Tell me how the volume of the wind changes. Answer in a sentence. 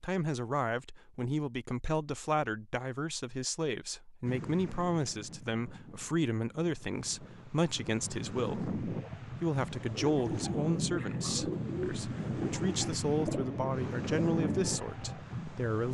The volume of the wind goes up.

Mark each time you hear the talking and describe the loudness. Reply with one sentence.
The talking can be heard from 0.0 to 15.8 s, at a steady volume.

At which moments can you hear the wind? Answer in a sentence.
The wind can be heard from 4.2 to 15.8 s.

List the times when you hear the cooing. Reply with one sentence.
The cooing can be heard from 9.8 to 15.2 s.